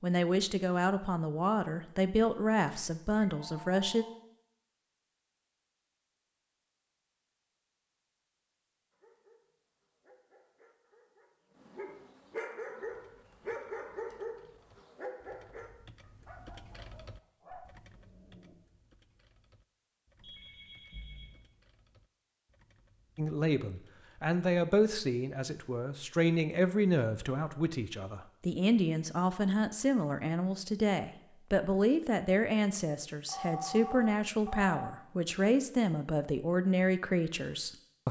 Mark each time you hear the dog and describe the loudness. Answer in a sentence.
You can hear the dog from 8.9 to 18.6 s, getting louder then quieter.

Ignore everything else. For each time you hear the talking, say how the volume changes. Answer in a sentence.
You can hear the talking from 0.0 to 4.0 s, at a steady volume; and from 23.1 to 38.0 s, at a steady volume.